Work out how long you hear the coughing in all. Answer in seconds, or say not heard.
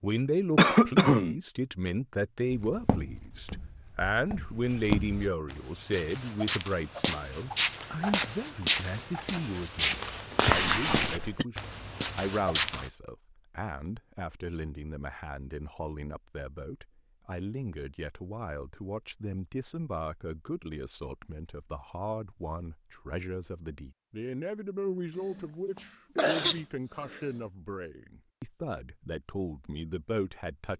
4 s.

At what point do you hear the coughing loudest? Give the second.
1 s.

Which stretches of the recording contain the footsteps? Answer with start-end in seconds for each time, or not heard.
2.5-12.9.